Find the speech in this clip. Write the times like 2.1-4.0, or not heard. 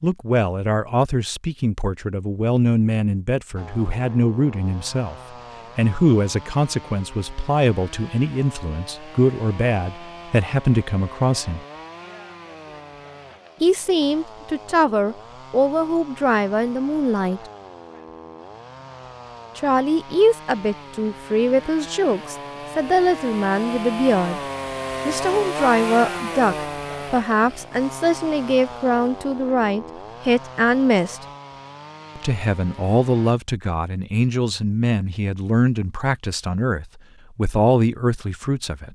0.0-5.2, 5.8-11.6, 13.6-17.4, 19.6-24.4, 25.1-31.2, 32.1-38.9.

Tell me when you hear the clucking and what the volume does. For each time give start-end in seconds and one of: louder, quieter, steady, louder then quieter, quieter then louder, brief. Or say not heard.
not heard.